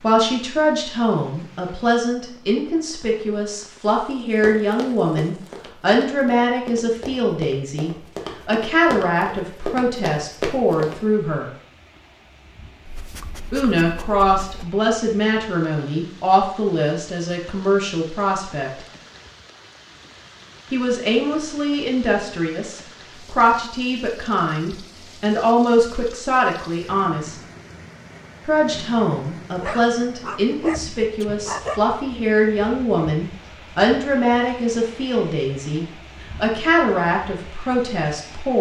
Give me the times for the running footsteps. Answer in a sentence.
You can hear the running footsteps from 4.4 to 10.9 s.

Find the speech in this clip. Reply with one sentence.
You can hear the speech from 0.0 to 11.5 s, from 13.5 to 18.9 s, from 20.7 to 27.4 s and from 28.4 to 38.5 s.